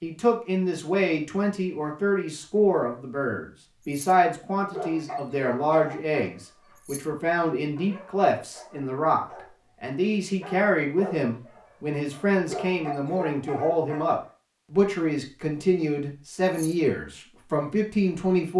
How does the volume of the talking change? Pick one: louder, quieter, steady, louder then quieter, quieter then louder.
steady.